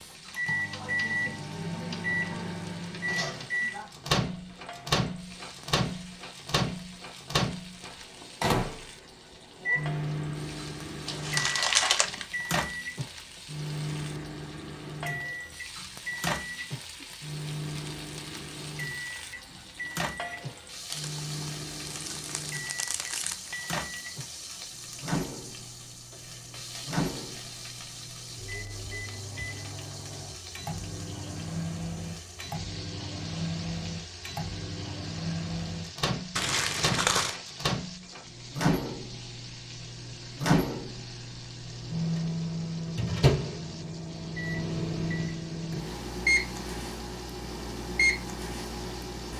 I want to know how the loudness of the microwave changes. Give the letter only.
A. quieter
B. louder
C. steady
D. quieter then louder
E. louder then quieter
D.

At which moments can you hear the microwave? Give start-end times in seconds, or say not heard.
0.2-49.3.